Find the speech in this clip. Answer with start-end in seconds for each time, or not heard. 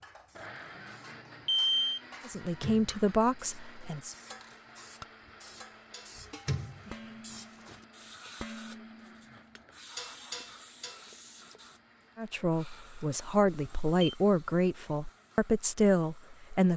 2.2-4.2, 12.2-16.7.